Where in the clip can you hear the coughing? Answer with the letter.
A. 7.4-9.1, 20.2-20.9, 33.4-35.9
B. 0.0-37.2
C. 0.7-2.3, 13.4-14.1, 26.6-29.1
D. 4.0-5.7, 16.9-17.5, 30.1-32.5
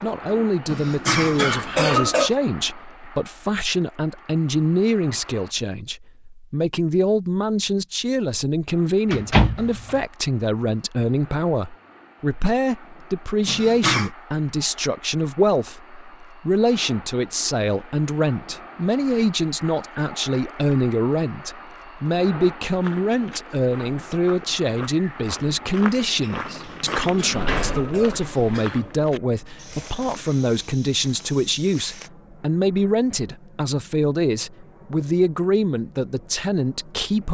C.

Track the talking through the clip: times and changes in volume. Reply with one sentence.
The talking can be heard from 0.0 to 37.2 s, at a steady volume.